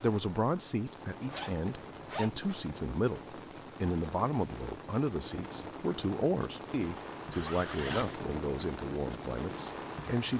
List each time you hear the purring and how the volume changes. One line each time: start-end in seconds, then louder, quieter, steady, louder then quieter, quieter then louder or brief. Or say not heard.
not heard.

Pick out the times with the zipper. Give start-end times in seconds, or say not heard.
1.3-2.6, 7.3-8.2.